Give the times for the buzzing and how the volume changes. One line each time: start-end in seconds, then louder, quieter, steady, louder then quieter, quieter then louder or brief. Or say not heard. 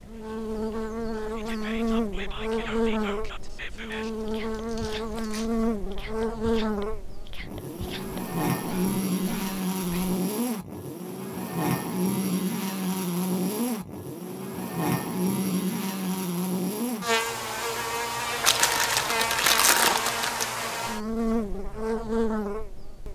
0.0-23.1 steady.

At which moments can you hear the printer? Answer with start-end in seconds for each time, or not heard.
not heard.